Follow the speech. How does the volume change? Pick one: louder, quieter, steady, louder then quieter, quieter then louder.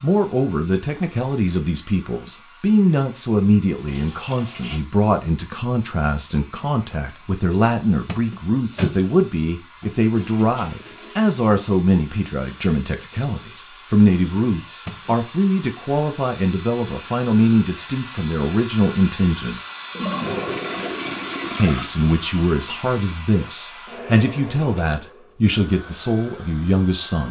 steady.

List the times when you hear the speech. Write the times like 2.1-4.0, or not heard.
0.0-19.6, 21.6-27.2.